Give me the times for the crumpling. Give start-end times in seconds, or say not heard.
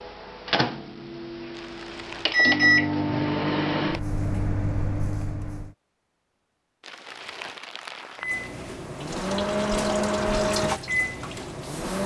1.5-2.5, 6.8-8.5.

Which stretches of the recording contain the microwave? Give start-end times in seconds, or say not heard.
0.0-5.8, 8.2-12.0.